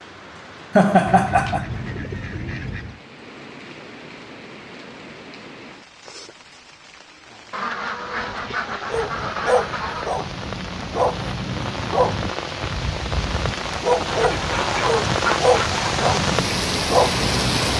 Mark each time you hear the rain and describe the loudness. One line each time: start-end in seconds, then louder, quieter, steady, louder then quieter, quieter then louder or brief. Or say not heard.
0.0-17.7 louder.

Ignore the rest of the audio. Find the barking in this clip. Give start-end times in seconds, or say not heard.
8.9-17.7.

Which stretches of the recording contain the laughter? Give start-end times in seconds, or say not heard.
0.8-1.6.